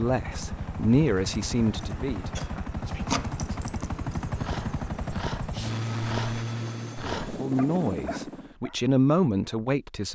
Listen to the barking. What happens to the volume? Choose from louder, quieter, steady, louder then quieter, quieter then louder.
quieter then louder.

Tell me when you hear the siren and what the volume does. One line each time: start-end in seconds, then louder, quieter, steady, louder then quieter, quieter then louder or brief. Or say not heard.
not heard.